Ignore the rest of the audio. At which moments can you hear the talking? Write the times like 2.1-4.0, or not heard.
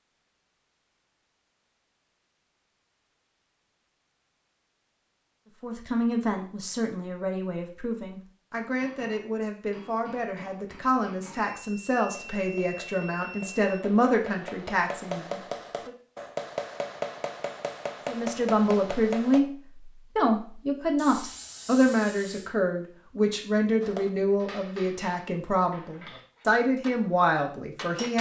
5.6-15.9, 18.1-28.1.